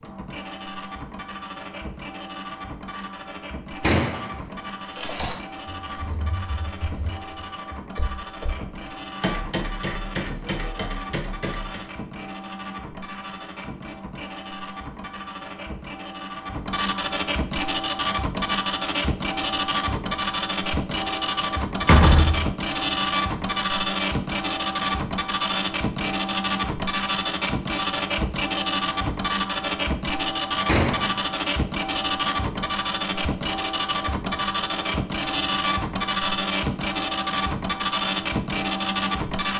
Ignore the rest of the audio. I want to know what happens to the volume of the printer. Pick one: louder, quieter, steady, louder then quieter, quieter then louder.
louder.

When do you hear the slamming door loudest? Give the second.
22 s.